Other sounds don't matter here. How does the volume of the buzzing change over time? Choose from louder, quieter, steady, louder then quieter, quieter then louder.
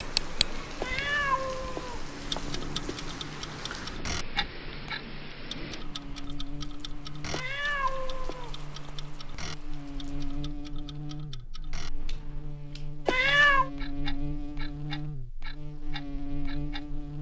louder.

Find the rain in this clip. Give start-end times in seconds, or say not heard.
0.0-10.6.